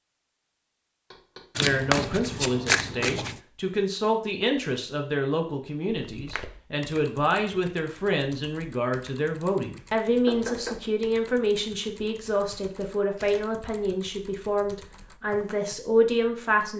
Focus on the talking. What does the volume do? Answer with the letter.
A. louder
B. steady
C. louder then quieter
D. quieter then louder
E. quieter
B.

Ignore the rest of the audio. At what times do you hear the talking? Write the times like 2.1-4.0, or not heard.
1.6-16.7.